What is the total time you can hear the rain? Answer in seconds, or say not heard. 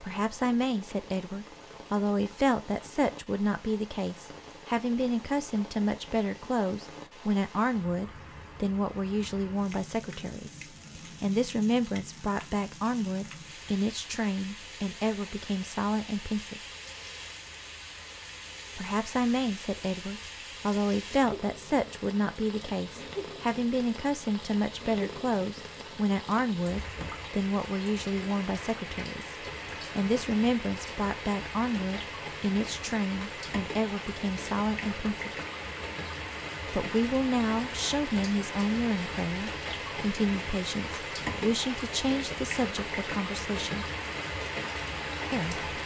46 s.